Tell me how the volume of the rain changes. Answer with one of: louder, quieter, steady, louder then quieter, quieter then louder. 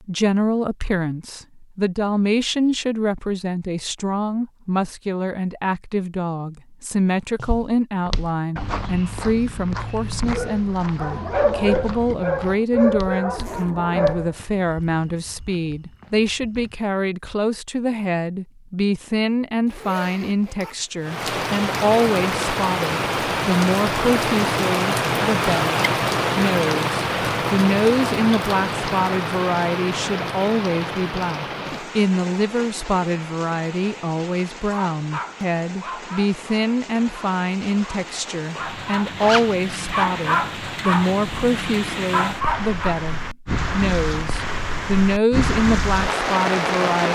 quieter then louder.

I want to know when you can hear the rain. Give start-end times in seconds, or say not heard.
21.0-47.1.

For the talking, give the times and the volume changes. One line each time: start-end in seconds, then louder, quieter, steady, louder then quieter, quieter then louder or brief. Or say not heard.
0.1-47.1 steady.